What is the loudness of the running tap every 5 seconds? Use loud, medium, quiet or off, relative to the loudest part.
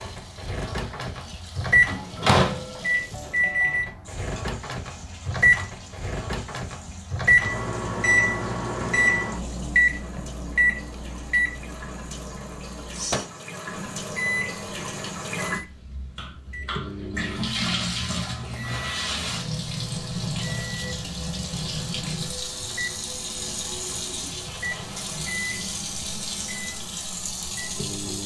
quiet, quiet, medium, loud, loud, loud.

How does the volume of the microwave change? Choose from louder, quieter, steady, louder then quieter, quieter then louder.
quieter.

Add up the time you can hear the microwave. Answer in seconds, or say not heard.
28 s.